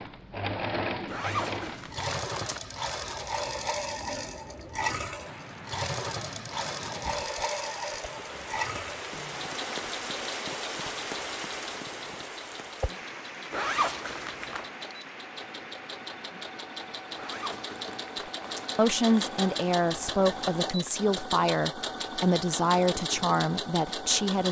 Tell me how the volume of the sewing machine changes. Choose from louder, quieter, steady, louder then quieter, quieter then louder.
quieter then louder.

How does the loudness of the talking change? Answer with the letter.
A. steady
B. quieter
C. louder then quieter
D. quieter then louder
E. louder
A.